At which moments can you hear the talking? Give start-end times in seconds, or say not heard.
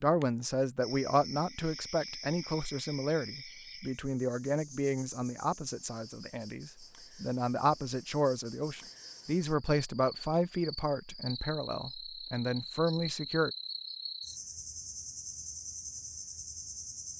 0.0-13.5.